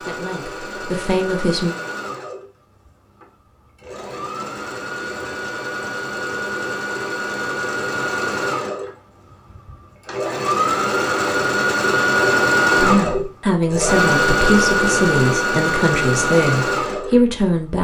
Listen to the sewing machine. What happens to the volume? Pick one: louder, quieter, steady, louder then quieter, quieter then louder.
louder.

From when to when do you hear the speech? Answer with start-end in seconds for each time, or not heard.
0.0-1.8, 12.8-17.7.